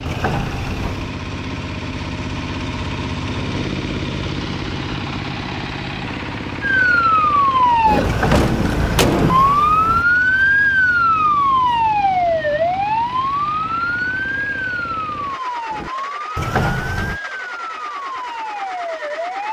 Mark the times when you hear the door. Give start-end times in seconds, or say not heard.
0.1-1.1, 8.0-10.1, 16.4-17.2.